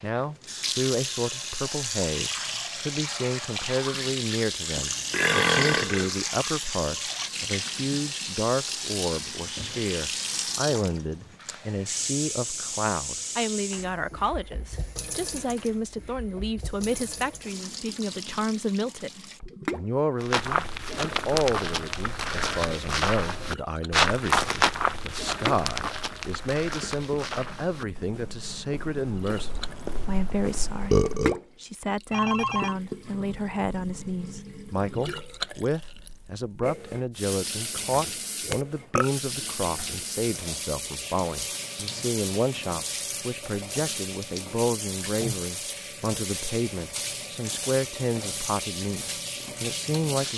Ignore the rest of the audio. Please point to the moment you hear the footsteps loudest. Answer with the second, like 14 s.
24 s.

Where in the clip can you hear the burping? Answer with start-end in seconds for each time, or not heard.
4.8-6.2, 30.9-31.4, 38.5-39.1.